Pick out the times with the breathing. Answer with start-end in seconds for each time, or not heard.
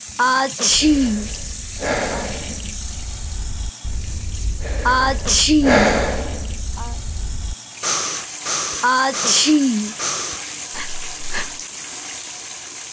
0.7-11.7.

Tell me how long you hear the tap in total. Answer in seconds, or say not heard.
13 s.